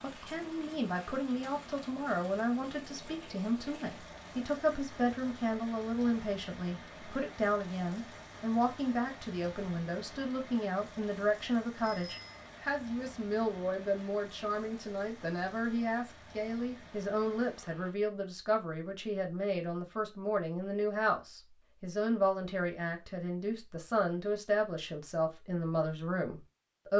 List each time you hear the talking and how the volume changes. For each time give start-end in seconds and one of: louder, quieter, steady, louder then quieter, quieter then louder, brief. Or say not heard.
0.0-26.9 steady.